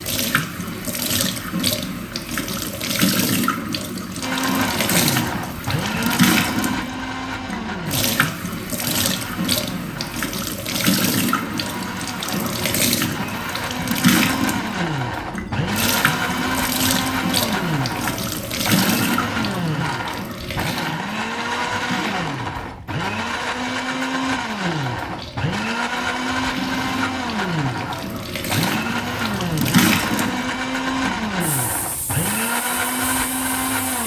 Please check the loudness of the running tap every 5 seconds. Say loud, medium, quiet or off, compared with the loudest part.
loud, loud, loud, loud, medium, loud, medium.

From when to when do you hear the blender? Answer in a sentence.
The blender can be heard from 4.2 to 34.0 s.